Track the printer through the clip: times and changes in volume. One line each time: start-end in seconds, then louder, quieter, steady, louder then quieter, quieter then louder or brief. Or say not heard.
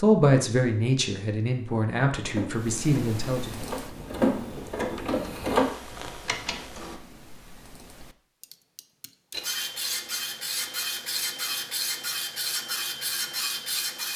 2.1-7.0 louder then quieter
9.3-14.1 steady.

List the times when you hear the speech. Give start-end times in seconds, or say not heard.
0.0-3.6.